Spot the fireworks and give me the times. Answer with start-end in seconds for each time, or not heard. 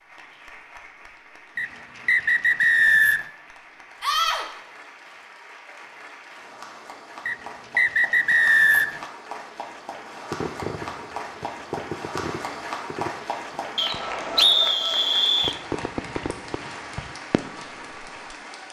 10.3-18.4.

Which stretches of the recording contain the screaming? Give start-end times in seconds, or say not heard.
4.0-4.5.